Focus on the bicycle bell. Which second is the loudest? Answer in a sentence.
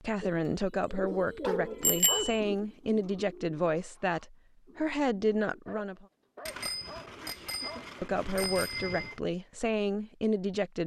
The volume of the bicycle bell peaks at 2 seconds.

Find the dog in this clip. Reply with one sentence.
The dog can be heard from 1.1 to 2.5 s and from 5.7 to 8.0 s.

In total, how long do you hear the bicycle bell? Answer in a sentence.
The bicycle bell can be heard for 3 seconds in total.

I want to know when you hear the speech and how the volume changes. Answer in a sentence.
The speech can be heard from 0.0 to 6.0 s, at a steady volume; and briefly from 8.0 to 10.8 s.